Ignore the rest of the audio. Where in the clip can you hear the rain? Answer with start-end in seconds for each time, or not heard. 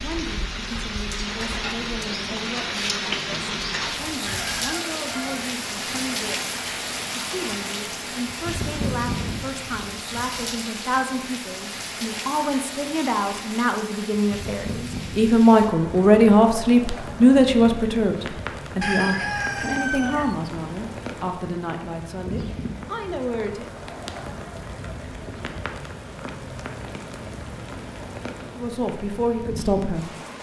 0.0-30.3.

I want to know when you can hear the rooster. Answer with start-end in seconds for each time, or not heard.
4.2-5.5, 18.8-20.4.